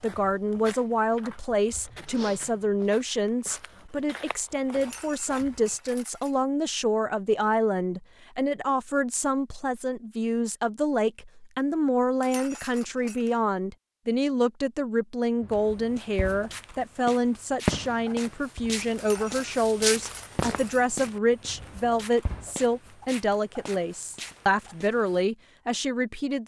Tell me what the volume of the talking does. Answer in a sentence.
The volume of the talking stays about the same.